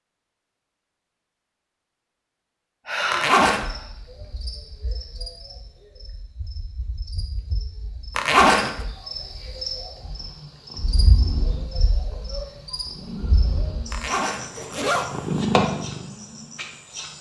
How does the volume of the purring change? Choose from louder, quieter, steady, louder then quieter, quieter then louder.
quieter then louder.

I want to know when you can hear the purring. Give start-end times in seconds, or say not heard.
9.9-17.1.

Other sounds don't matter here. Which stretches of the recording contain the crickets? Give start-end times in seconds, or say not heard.
3.6-17.1.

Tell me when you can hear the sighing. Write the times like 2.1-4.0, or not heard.
2.9-3.9.